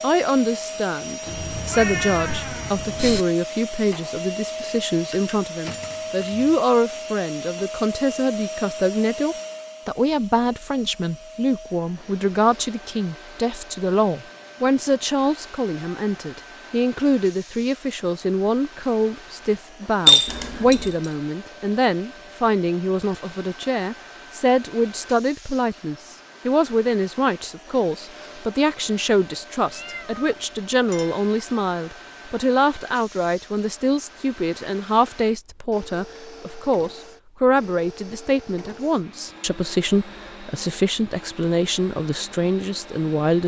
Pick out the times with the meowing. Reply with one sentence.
You can hear the meowing from 1.2 to 3.2 s, from 20.2 to 20.9 s and from 29.7 to 30.4 s.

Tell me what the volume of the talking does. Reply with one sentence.
The volume of the talking stays about the same.